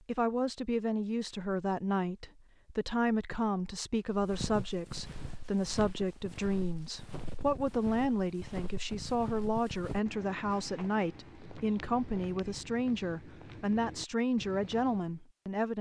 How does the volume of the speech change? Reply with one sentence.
The loudness of the speech stays about the same.